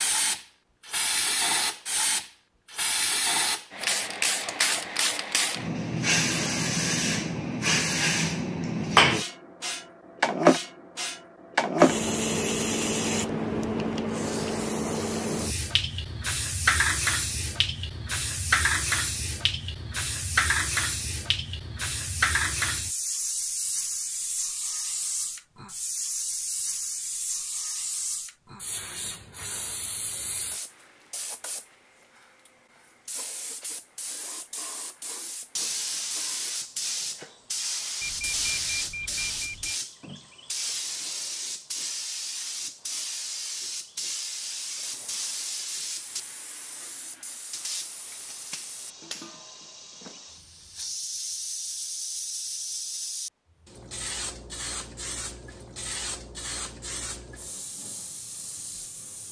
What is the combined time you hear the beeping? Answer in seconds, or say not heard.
2 s.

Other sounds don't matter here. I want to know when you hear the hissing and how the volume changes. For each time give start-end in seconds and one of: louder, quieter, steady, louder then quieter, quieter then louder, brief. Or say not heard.
0.0-59.2 quieter.